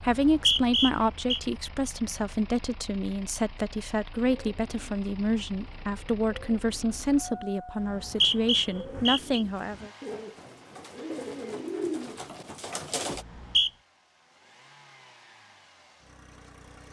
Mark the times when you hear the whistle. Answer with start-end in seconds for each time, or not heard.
0.1-1.4, 7.8-9.4, 13.2-13.7.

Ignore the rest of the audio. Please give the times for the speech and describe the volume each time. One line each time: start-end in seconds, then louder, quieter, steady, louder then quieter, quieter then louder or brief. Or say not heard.
0.0-9.9 steady.